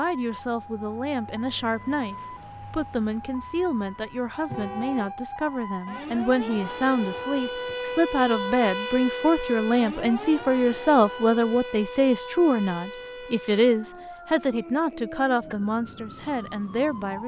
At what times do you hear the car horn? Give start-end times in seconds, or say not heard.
4.5-5.2.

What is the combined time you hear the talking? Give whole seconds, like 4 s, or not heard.
17 s.